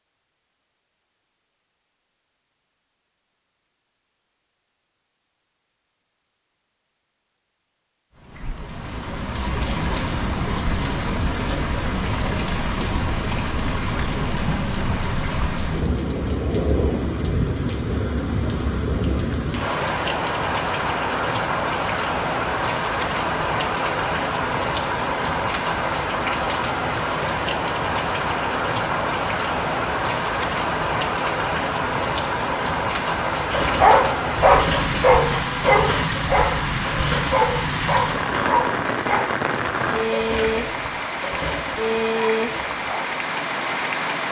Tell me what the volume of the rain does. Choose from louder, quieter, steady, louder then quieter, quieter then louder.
steady.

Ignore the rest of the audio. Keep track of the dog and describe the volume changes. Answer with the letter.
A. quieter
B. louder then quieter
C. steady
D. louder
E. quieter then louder
A.